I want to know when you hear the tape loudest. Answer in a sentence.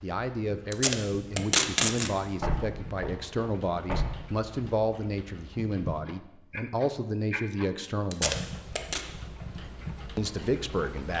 The loudest moment of the tape is at 2 seconds.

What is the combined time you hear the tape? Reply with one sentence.
The tape can be heard for 2 seconds in total.